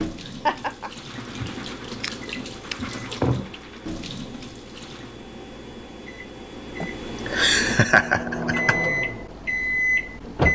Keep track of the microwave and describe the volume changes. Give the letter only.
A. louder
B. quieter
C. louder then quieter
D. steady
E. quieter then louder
A.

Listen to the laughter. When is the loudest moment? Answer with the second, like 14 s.
8 s.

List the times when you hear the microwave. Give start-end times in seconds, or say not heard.
0.0-10.5.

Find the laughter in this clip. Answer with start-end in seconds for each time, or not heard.
0.3-0.9, 6.8-8.8.